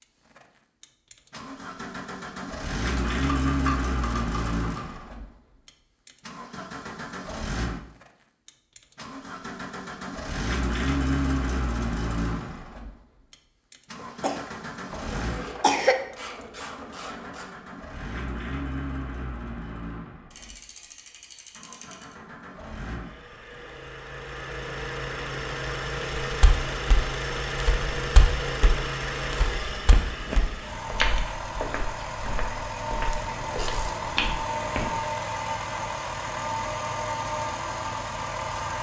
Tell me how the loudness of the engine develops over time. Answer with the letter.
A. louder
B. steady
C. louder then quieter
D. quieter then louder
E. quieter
D.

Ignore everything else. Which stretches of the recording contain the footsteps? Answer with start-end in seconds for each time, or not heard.
26.2-35.0.